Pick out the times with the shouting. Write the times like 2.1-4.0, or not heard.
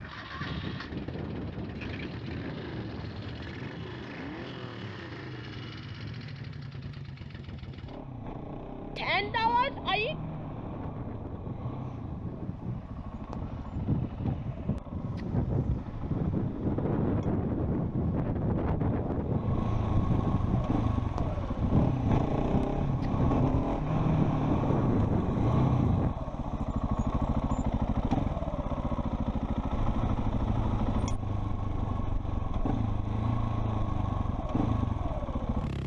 8.9-10.2.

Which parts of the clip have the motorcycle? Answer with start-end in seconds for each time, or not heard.
0.0-35.8.